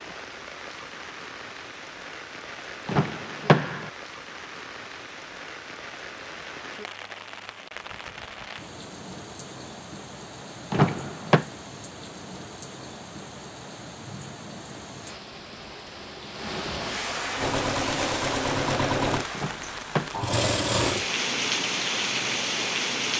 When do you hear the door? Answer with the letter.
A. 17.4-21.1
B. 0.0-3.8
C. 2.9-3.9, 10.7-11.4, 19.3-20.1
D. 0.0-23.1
C.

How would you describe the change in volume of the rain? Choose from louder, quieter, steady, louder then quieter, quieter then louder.
louder.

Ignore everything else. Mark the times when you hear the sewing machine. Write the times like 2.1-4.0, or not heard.
17.4-21.1.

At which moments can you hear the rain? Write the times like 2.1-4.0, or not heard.
0.0-23.1.